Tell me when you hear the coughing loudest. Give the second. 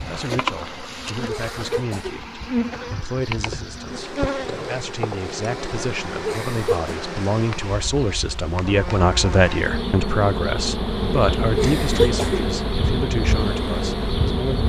12 s.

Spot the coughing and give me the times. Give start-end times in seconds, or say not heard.
1.2-2.2, 6.2-6.9, 11.6-12.5.